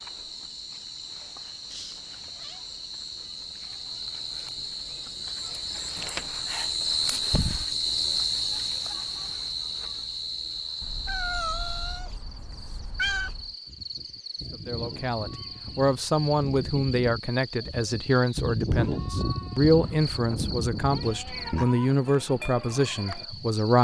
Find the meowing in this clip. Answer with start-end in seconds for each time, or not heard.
1.7-2.6, 10.8-13.6, 19.8-21.6.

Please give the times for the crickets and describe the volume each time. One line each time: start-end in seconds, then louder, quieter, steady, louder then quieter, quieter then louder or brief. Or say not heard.
0.0-23.7 louder then quieter.